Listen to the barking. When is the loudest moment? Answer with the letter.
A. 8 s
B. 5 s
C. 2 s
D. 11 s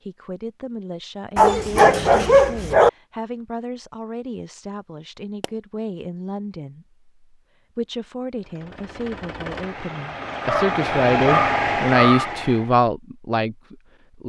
C.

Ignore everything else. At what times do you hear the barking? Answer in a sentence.
You can hear the barking from 1.4 to 2.9 s and from 10.4 to 12.3 s.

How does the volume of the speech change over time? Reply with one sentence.
The loudness of the speech goes up.